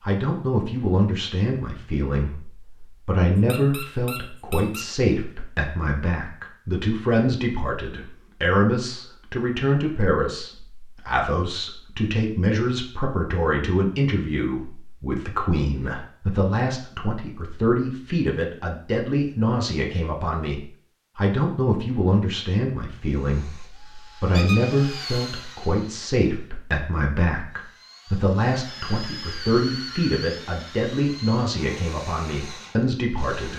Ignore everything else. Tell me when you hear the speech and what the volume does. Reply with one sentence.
The speech can be heard from 0.0 to 33.5 s, at a steady volume.